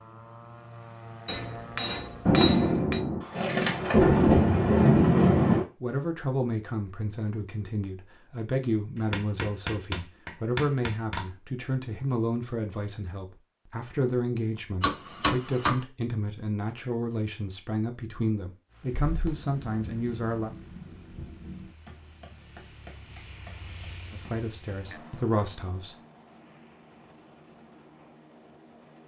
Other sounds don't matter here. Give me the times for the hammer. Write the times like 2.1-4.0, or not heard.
1.2-3.0, 8.9-11.2, 14.8-15.8, 21.9-24.8.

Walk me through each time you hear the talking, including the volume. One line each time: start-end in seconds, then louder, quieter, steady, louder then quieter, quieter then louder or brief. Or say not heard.
5.8-20.5 steady
24.1-25.9 brief.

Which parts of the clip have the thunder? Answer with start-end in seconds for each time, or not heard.
2.2-5.7, 19.1-21.7.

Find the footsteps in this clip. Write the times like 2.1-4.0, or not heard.
not heard.